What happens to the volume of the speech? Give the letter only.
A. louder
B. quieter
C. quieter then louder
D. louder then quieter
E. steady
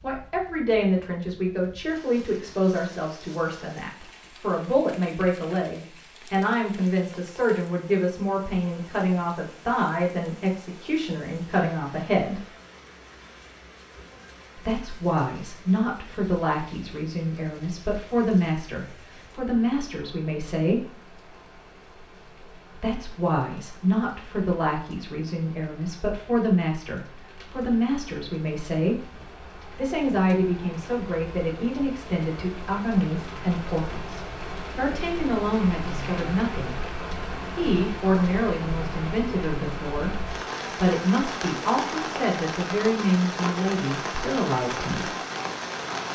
E.